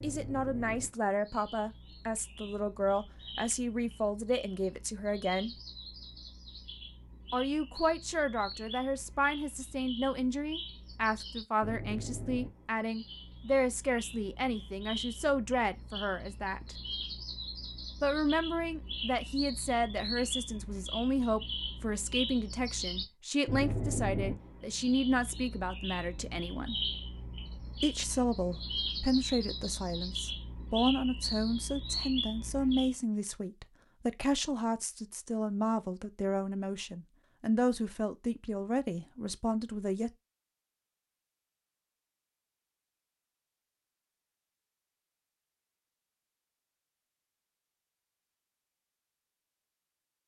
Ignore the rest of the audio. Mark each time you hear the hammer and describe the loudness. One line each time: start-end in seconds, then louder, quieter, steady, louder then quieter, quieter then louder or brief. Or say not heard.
not heard.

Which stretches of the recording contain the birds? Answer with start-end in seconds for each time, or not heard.
0.0-33.0.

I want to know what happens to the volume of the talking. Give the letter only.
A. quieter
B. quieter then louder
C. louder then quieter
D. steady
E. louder
D.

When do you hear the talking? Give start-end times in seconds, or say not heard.
0.0-5.5, 7.3-16.8, 18.0-26.8, 27.8-40.1.